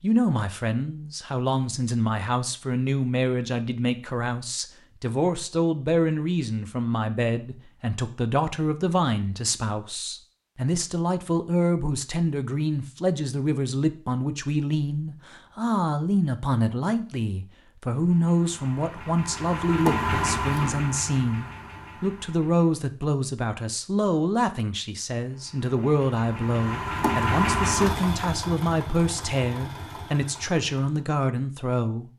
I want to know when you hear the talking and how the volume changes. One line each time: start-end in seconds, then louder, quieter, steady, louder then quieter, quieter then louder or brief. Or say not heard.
0.0-32.1 steady.